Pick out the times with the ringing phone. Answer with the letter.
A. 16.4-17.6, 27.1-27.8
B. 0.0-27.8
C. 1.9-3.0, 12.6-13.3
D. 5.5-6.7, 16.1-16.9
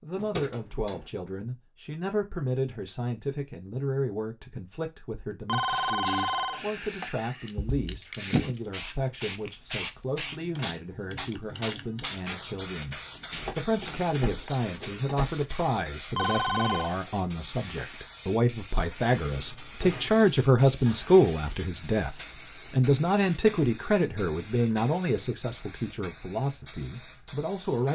D.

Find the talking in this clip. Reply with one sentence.
The talking can be heard from 0.0 to 27.8 s.